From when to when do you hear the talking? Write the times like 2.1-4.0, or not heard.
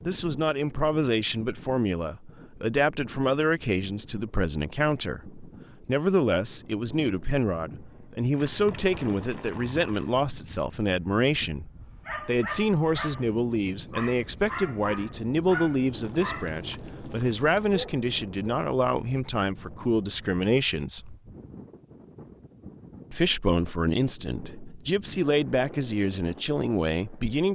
0.1-21.1, 23.1-27.5.